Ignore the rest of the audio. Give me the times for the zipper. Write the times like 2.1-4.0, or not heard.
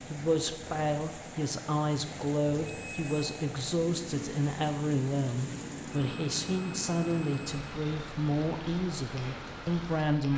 not heard.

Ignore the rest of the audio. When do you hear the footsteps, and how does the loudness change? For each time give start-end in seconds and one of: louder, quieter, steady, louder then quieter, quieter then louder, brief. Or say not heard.
not heard.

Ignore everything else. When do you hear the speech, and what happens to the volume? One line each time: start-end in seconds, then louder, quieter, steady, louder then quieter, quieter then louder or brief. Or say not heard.
0.1-10.3 steady.